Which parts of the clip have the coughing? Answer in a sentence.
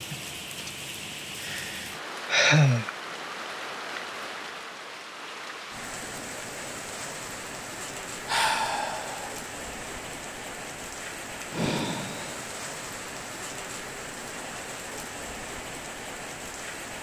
The coughing can't be heard in this clip.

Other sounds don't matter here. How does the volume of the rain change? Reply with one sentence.
The volume of the rain stays about the same.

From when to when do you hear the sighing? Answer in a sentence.
The sighing can be heard from 1.4 to 2.9 s, from 8.2 to 9.3 s and from 11.5 to 12.5 s.